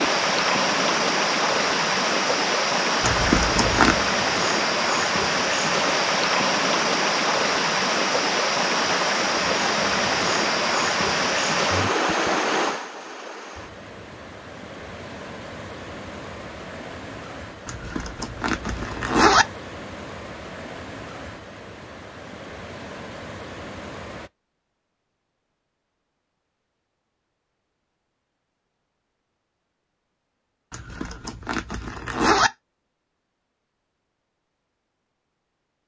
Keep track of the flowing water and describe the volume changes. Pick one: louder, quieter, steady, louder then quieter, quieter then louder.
quieter.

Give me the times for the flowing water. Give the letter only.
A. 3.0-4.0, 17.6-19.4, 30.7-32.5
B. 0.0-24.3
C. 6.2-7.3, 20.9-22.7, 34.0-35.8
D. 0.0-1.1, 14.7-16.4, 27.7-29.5
B.